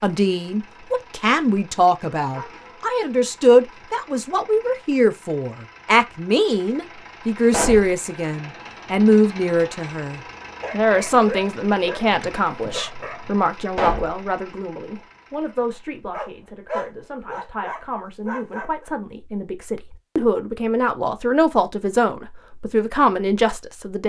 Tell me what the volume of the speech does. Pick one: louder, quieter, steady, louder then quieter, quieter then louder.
quieter then louder.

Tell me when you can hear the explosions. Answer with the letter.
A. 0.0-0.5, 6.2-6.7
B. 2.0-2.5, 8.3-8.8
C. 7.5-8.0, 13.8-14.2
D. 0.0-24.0
C.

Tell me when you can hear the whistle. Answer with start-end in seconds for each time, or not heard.
not heard.